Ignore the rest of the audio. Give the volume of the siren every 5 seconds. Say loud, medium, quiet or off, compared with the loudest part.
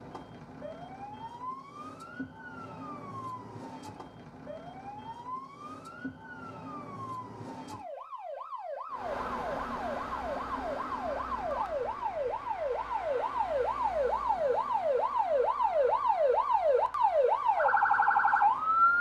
quiet, quiet, medium, loud.